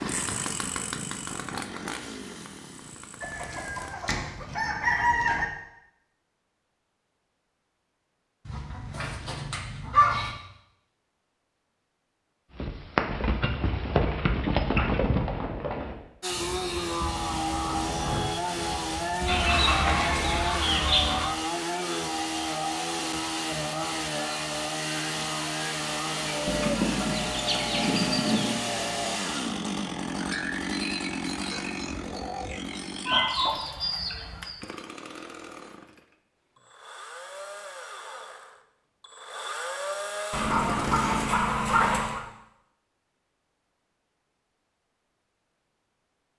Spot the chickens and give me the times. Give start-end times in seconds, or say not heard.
3.2-5.5, 8.4-10.3, 19.2-21.2, 26.4-28.6, 33.0-34.6, 40.3-42.2.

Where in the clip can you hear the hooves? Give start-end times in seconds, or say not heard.
12.6-20.4.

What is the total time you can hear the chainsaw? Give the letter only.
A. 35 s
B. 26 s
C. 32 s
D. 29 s
D.